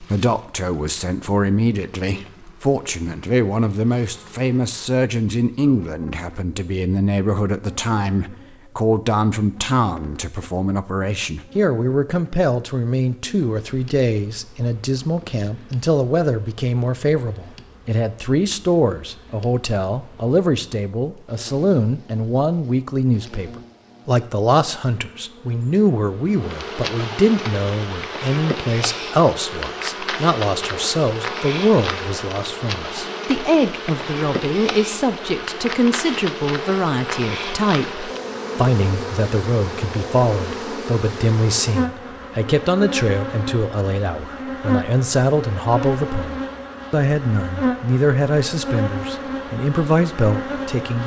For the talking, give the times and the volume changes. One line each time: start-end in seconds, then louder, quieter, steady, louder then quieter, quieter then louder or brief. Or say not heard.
0.0-51.0 steady.